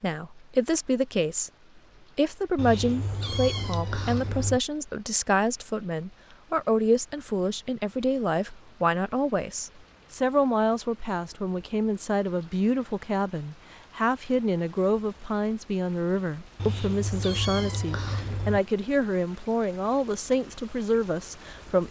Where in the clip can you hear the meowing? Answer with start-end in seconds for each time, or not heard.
2.5-4.6, 16.6-18.6.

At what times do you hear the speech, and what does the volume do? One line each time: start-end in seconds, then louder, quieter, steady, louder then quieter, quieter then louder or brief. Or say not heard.
0.0-1.5 brief
2.1-21.8 steady.